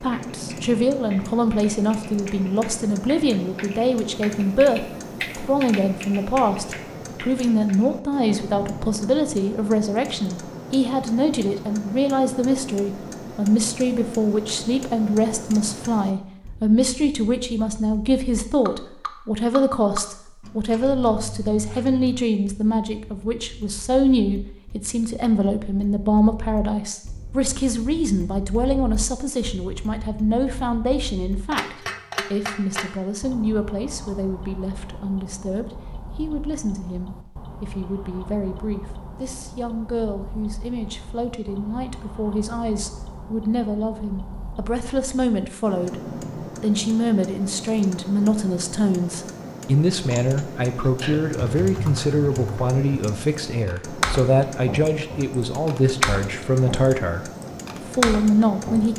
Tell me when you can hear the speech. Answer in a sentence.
You can hear the speech from 0.0 to 58.9 s.